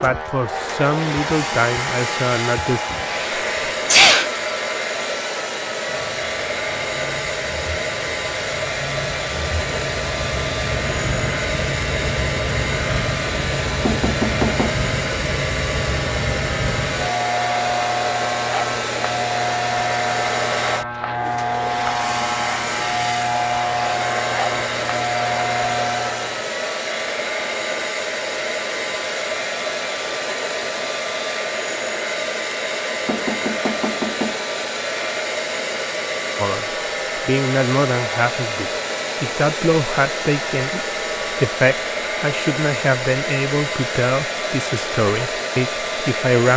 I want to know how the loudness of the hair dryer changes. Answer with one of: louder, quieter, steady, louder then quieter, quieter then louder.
steady.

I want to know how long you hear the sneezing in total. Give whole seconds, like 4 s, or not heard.
2 s.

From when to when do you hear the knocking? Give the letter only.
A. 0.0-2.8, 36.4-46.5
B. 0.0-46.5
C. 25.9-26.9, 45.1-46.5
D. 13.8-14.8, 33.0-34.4
D.